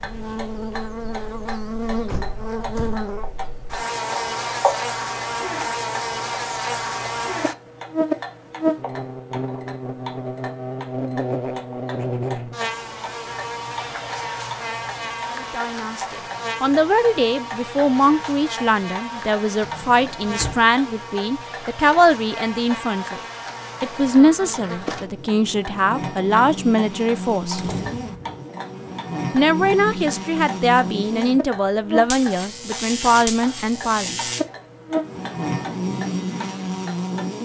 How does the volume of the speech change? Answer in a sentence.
The loudness of the speech stays about the same.